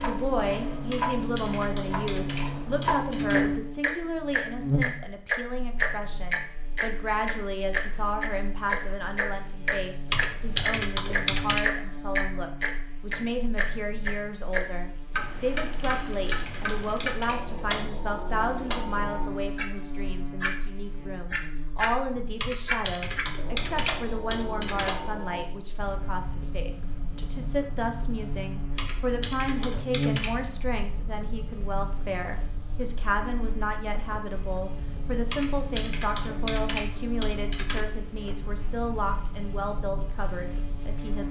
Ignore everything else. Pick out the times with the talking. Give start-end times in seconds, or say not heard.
0.0-41.2.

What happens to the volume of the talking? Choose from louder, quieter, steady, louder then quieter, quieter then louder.
steady.